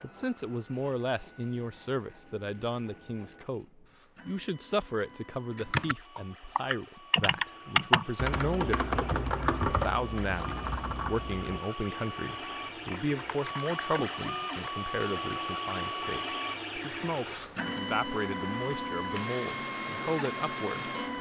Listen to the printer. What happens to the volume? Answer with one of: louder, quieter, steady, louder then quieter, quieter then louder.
louder.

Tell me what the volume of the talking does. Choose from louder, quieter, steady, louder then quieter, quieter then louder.
steady.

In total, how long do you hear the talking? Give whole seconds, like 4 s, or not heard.
21 s.